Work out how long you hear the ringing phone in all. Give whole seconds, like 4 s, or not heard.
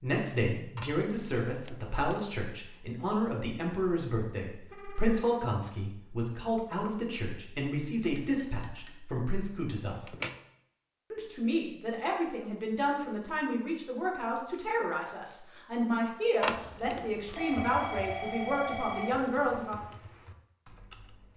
4 s.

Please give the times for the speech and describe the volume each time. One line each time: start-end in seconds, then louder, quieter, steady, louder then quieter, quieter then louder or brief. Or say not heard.
0.0-10.2 steady
11.1-19.9 steady.